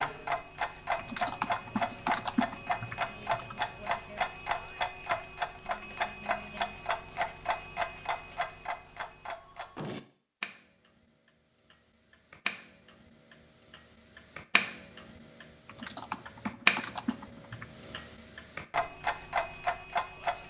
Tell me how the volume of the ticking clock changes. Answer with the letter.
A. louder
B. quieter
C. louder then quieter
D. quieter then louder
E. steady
D.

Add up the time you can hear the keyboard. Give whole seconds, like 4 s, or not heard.
5 s.